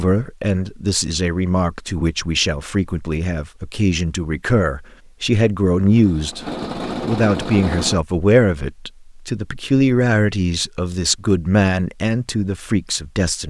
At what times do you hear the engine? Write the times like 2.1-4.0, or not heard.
5.8-8.0.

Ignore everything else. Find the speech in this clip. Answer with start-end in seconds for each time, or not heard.
0.0-13.4.